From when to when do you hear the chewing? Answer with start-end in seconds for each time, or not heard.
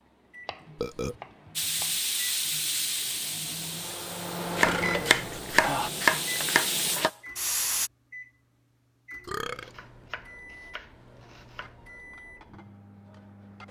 not heard.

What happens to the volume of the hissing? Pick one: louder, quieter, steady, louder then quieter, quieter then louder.
quieter then louder.